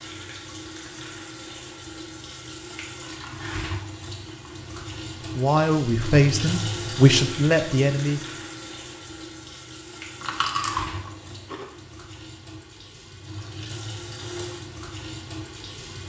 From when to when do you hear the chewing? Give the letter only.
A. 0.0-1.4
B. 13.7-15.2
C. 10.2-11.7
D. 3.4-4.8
C.